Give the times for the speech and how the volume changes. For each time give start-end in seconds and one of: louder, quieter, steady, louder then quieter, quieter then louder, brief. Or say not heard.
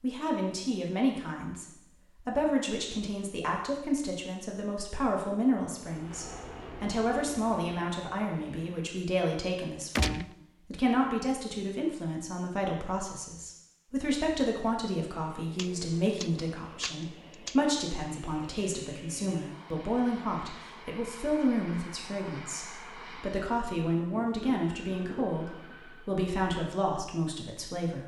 0.0-28.0 steady.